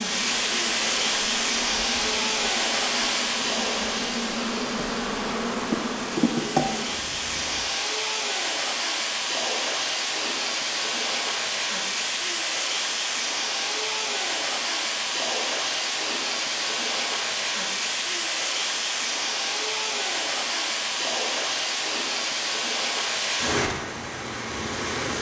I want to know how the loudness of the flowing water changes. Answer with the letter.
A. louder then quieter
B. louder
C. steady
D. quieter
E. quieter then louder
C.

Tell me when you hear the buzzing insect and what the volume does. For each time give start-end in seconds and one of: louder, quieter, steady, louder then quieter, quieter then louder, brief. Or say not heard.
0.0-7.7 louder.